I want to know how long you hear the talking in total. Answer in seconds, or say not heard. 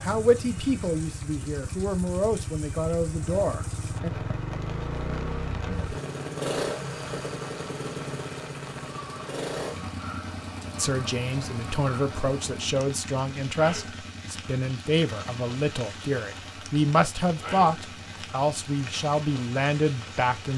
14 s.